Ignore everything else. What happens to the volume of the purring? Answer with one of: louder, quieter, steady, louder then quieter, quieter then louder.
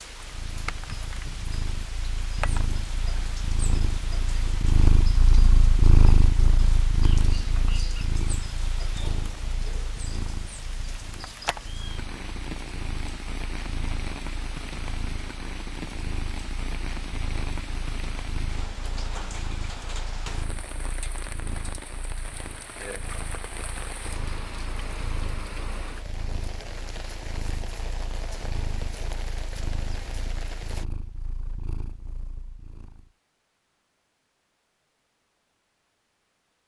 quieter.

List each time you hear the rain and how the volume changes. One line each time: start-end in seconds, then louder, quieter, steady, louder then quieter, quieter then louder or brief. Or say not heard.
0.0-30.9 steady.